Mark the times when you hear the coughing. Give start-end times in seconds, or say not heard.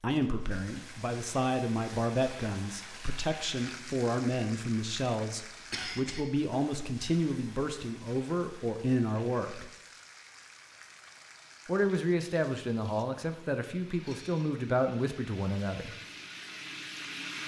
5.7-6.2.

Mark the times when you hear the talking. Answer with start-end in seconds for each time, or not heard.
0.0-9.7, 11.7-15.9.